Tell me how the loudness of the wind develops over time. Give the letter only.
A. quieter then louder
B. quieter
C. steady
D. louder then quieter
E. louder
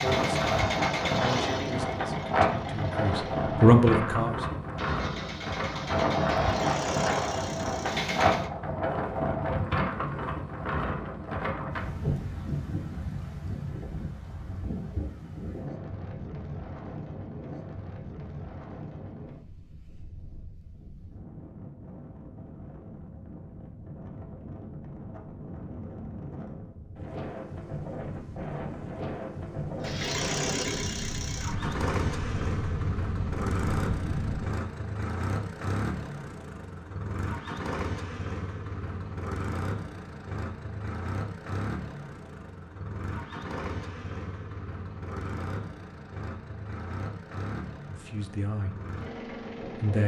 A.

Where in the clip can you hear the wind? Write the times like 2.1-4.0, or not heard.
0.0-34.5.